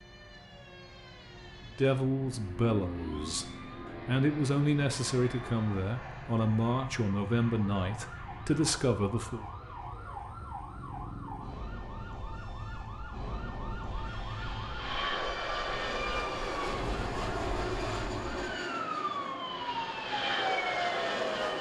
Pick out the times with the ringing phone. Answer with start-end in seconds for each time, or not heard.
not heard.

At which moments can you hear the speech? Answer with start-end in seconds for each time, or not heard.
1.6-9.4.